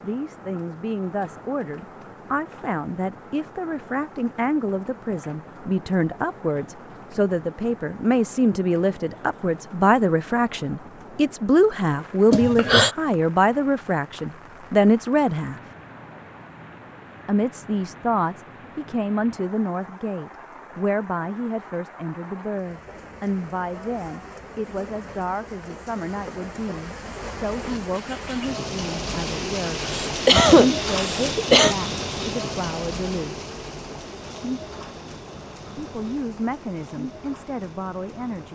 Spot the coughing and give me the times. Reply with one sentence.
You can hear the coughing from 12.3 to 12.9 s and from 29.9 to 31.8 s.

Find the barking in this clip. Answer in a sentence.
You can't hear the barking here.